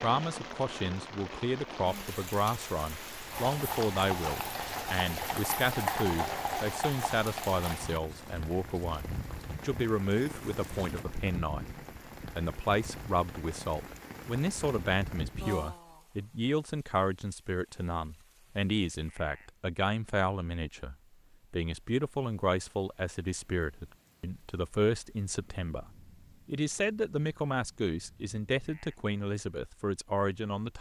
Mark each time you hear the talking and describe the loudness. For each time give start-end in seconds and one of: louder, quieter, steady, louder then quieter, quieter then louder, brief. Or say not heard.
0.0-30.7 steady.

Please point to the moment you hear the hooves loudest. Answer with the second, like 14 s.
6 s.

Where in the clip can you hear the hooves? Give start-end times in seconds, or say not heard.
3.3-11.1.